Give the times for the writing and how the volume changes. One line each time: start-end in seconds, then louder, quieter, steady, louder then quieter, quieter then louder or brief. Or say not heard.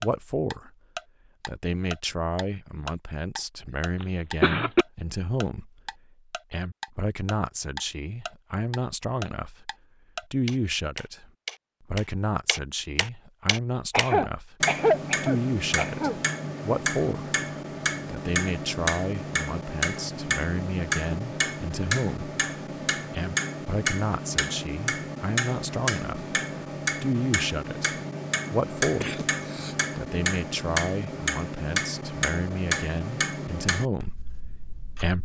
not heard.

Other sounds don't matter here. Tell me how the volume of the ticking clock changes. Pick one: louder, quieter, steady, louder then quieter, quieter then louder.
louder.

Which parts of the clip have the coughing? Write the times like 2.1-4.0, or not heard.
4.0-4.8, 13.9-16.1, 29.0-29.8.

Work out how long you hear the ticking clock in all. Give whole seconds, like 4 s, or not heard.
35 s.